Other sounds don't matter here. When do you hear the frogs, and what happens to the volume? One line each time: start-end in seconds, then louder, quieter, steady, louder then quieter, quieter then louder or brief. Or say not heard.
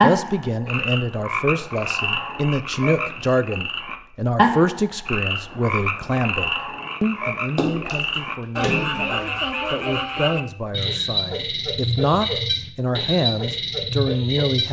0.0-14.6 steady.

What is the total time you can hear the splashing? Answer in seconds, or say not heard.
2 s.